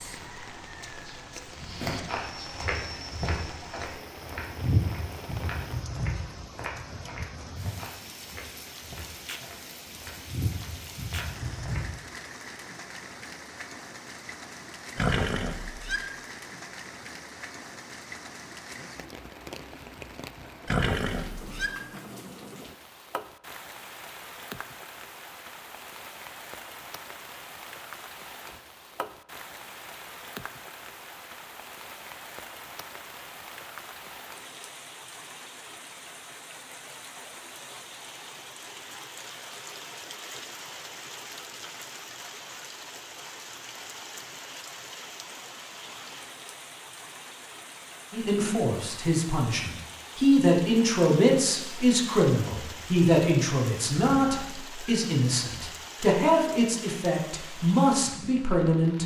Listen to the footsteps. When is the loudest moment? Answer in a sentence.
The volume of the footsteps peaks at 5 seconds.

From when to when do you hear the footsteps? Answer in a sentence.
The footsteps can be heard from 1.5 to 11.9 s.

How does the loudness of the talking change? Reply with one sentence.
The volume of the talking stays about the same.